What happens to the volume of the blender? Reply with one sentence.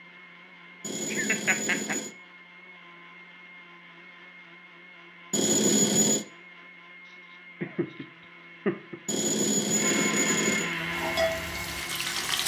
The volume of the blender goes up.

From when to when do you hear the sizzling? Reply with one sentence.
You can hear the sizzling from 10.7 to 12.4 s.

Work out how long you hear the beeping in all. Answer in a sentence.
The beeping can be heard for 4 seconds in total.